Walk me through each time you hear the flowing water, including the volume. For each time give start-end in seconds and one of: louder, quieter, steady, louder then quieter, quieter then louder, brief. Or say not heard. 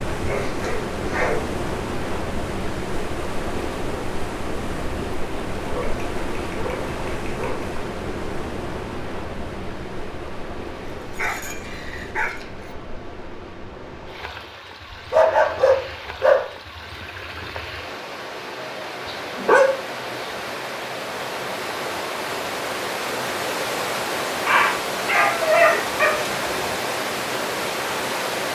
0.0-28.5 quieter then louder.